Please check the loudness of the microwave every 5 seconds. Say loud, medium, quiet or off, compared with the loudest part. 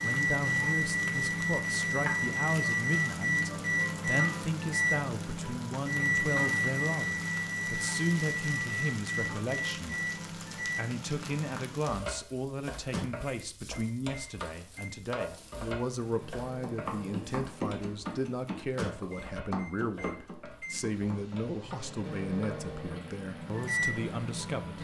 loud, loud, medium, quiet, medium.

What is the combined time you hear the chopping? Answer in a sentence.
You can hear the chopping for 5 seconds altogether.